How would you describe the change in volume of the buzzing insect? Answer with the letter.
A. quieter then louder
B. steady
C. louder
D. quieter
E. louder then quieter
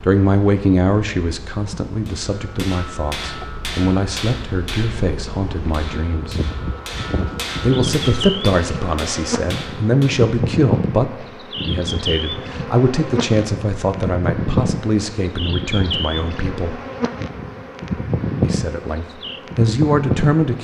C.